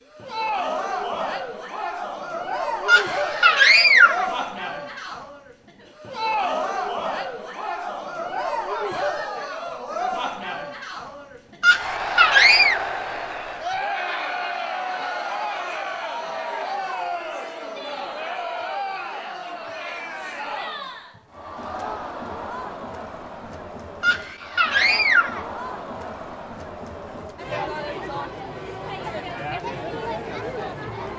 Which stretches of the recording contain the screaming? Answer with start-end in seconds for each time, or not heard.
2.9-4.3, 11.6-12.8, 24.0-25.4.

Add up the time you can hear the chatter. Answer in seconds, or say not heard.
31 s.